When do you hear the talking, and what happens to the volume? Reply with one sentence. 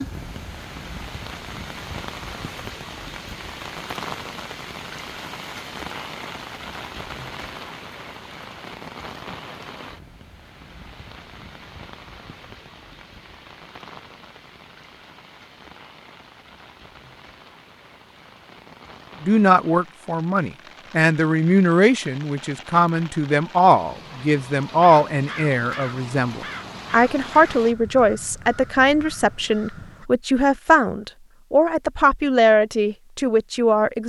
You can hear the talking from 19.2 to 34.0 s, at a steady volume.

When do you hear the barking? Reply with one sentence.
The barking can't be heard in this clip.